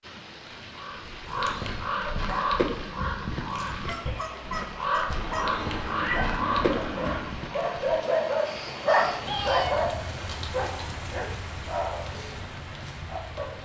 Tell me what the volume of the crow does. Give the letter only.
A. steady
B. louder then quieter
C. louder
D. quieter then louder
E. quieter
E.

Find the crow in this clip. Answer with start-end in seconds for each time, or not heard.
0.6-9.8.